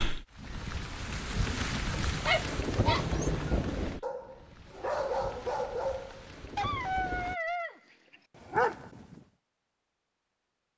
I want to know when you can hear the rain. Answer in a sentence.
You can hear the rain from 0.0 to 7.3 s.